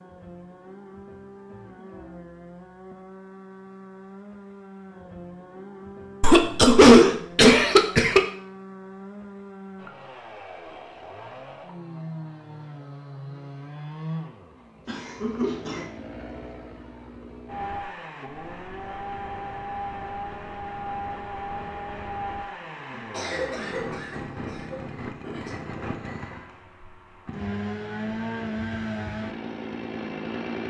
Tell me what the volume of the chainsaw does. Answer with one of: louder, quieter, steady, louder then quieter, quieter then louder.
louder.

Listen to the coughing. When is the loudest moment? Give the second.
7 s.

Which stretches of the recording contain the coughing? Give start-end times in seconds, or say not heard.
6.2-8.2, 14.8-15.8, 22.9-25.6.